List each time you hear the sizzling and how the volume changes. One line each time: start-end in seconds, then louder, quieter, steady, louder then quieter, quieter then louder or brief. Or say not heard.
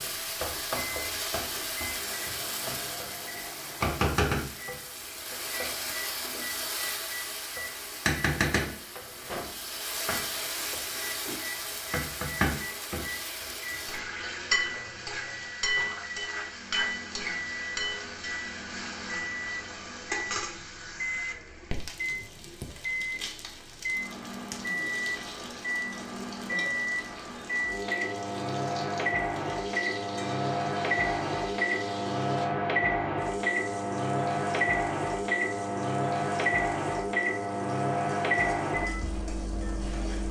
0.0-40.2 quieter.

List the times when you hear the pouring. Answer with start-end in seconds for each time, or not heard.
not heard.